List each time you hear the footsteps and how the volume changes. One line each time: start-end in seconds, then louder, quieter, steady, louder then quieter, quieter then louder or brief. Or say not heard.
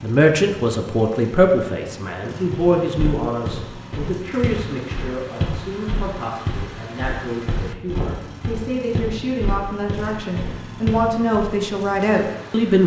2.5-11.5 steady.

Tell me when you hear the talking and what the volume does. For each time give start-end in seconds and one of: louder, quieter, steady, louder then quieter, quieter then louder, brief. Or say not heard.
0.0-12.8 quieter then louder.